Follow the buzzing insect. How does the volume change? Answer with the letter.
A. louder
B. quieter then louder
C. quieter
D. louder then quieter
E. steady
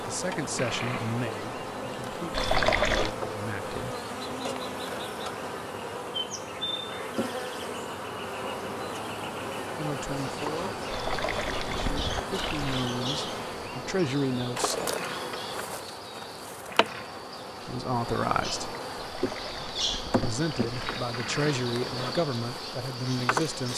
E.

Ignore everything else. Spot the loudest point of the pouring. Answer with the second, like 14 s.
3 s.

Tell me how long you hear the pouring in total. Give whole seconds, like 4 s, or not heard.
5 s.